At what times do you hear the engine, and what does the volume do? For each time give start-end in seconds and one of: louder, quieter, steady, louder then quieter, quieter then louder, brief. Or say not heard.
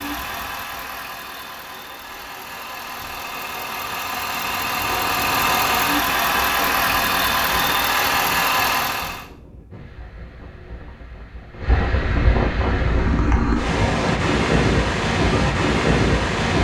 0.0-9.2 louder.